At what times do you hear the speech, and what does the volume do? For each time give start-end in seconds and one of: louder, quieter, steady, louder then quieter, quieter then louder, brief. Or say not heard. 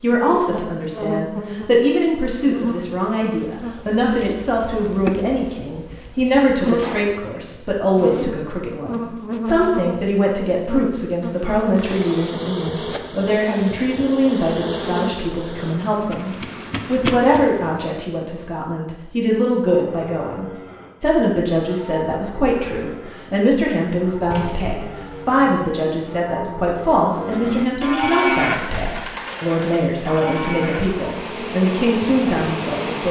0.0-33.0 steady.